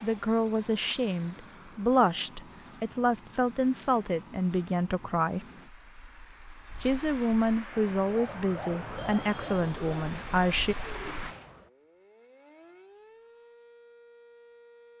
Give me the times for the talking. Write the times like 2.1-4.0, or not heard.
0.0-5.5, 6.8-10.8.